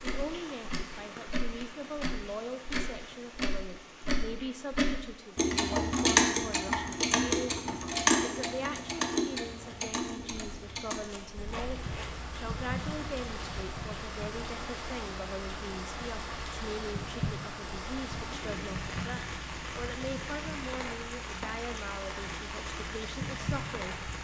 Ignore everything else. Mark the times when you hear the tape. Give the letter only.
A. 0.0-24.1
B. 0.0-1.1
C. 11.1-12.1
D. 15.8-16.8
C.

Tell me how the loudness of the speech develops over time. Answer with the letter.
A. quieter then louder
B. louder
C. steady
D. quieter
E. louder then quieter
C.